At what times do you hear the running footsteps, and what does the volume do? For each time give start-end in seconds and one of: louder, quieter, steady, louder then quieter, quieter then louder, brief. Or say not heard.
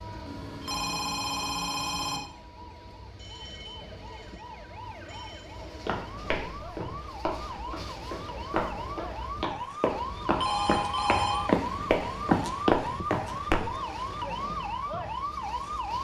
5.8-13.6 louder.